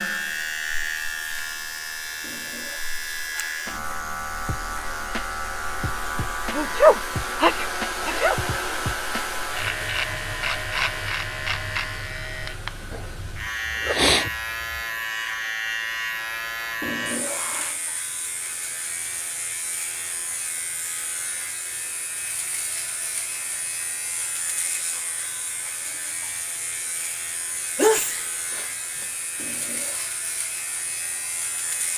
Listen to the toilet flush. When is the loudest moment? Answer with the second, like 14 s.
17 s.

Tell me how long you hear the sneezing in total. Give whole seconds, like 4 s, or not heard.
5 s.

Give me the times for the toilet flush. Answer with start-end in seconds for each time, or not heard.
2.2-3.0, 16.8-17.8, 29.4-30.2.